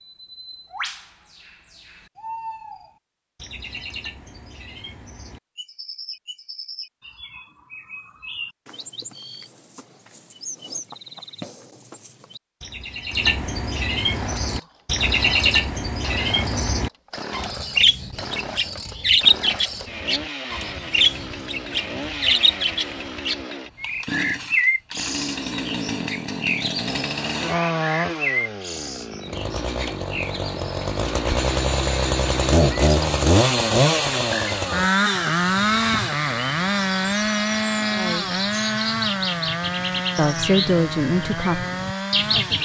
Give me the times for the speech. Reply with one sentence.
The speech can be heard from 38.0 to 38.4 s and from 40.1 to 42.6 s.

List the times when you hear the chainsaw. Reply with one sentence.
You can hear the chainsaw from 14.0 to 42.6 s.